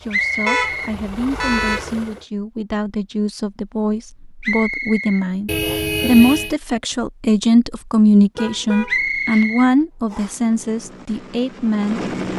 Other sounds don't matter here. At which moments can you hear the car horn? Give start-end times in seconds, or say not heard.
0.5-1.9, 5.5-6.5, 8.3-9.7.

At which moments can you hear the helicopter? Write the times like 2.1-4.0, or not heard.
0.0-2.2, 10.1-12.3.